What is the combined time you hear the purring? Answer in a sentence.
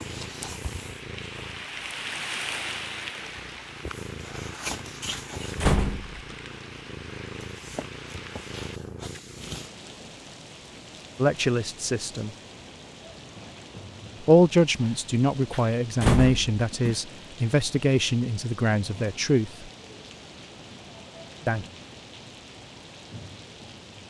You can hear the purring for 10 seconds altogether.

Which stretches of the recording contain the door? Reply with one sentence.
The door can be heard from 5.1 to 6.2 s and from 15.5 to 16.9 s.